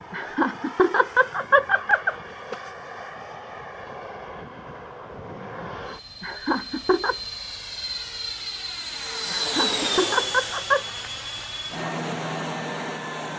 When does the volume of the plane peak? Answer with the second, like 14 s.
10 s.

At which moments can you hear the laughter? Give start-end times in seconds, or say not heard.
0.1-2.5, 6.2-7.2, 9.3-10.9.